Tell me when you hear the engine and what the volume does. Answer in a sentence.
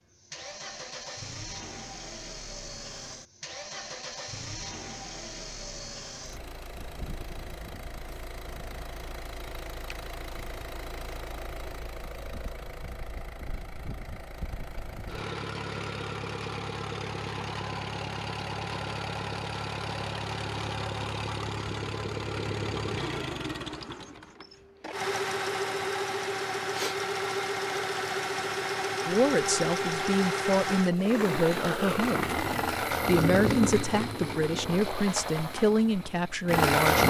You can hear the engine from 0.1 to 37.0 s, getting louder.